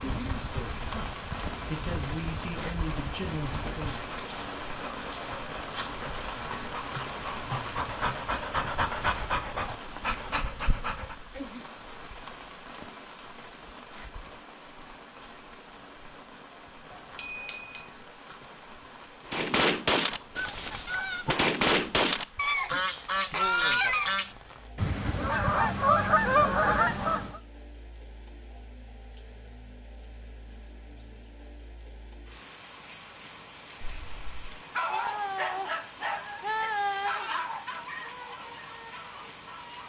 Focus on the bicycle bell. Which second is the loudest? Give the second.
17 s.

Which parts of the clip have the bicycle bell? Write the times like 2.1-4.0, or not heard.
16.9-17.9, 33.8-34.5.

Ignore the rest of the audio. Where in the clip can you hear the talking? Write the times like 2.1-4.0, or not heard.
0.0-4.2.